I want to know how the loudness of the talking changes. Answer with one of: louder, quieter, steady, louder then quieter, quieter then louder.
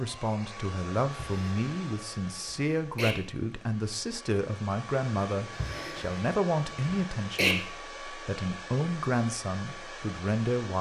steady.